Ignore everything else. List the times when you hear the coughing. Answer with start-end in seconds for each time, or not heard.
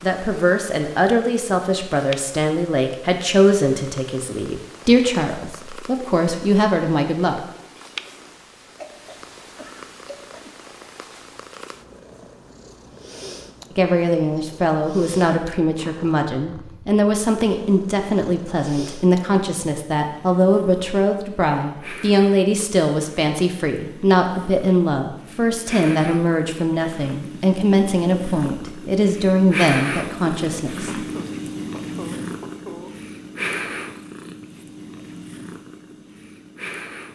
8.7-10.7, 30.9-33.0.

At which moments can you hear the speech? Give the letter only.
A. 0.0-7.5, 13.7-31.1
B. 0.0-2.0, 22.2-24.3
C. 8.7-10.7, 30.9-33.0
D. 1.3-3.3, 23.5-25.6
A.